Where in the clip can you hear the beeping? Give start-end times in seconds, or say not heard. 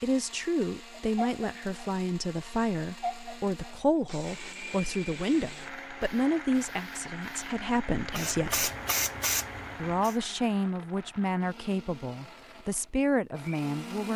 not heard.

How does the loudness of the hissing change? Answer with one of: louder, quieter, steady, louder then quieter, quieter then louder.
louder.